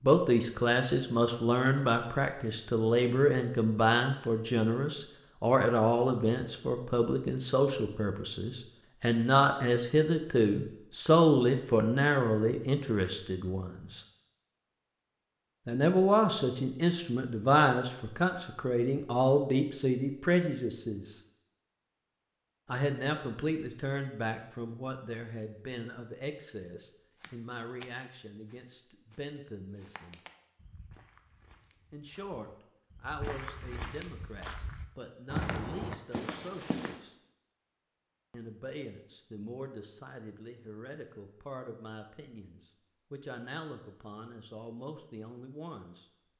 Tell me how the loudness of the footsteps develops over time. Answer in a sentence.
The volume of the footsteps goes up.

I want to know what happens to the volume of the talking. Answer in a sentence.
The volume of the talking goes down.